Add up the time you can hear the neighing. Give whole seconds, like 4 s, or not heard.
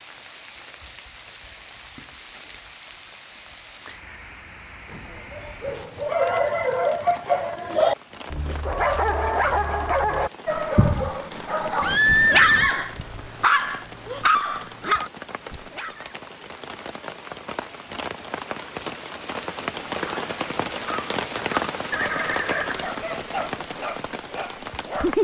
4 s.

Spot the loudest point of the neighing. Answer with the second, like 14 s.
12 s.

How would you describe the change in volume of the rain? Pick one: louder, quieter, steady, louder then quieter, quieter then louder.
louder.